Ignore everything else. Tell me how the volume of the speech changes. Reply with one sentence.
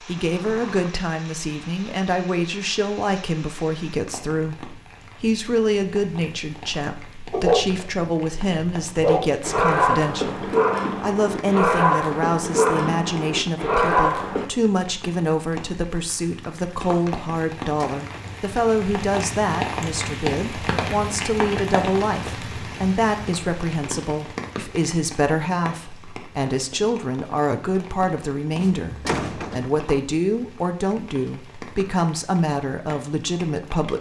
The volume of the speech stays about the same.